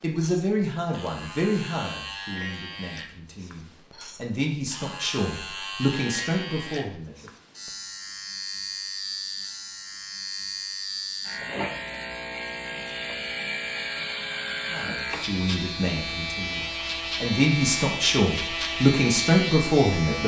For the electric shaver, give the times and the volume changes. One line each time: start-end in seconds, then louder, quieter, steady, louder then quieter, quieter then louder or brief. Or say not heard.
0.0-20.2 louder.